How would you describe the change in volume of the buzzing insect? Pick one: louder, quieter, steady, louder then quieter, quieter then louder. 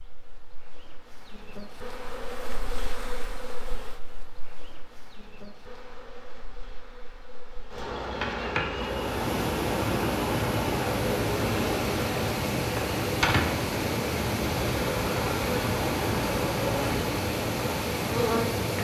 quieter then louder.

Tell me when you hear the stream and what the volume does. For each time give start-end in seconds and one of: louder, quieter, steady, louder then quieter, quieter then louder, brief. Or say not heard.
8.8-18.7 steady.